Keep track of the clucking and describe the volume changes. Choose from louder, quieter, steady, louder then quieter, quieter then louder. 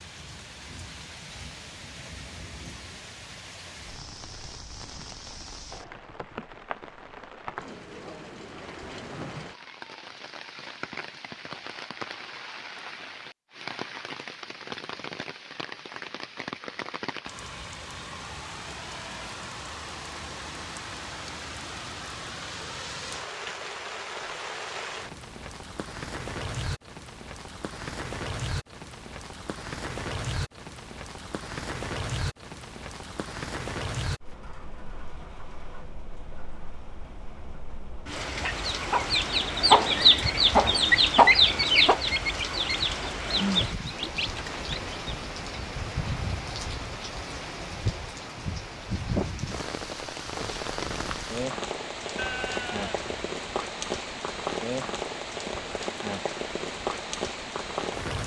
quieter.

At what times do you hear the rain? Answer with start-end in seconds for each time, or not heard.
0.0-58.2.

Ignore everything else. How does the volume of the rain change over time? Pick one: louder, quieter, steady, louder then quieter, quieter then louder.
louder.